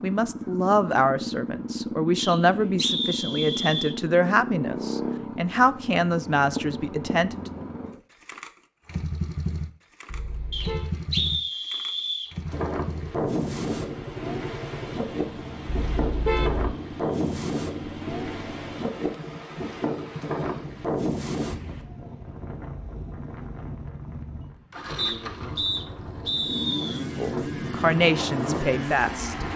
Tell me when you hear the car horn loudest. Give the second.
16 s.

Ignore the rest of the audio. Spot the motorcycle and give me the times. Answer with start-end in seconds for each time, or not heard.
0.0-29.5.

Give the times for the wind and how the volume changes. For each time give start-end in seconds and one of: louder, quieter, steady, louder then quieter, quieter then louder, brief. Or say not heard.
12.4-29.5 quieter then louder.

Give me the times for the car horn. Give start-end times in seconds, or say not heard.
10.1-10.9, 15.7-16.8.